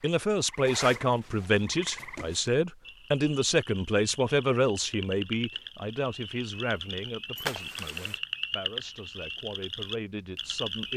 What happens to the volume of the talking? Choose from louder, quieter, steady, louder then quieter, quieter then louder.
quieter.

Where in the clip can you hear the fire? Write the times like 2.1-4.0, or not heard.
not heard.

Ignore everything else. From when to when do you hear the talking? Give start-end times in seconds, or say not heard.
0.0-10.9.